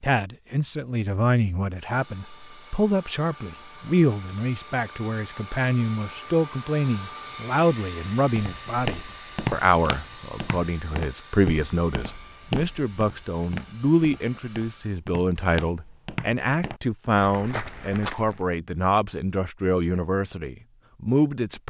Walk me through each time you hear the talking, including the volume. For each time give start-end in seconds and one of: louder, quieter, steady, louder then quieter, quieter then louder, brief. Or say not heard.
0.0-21.6 steady.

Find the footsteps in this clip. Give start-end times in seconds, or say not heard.
8.3-18.4.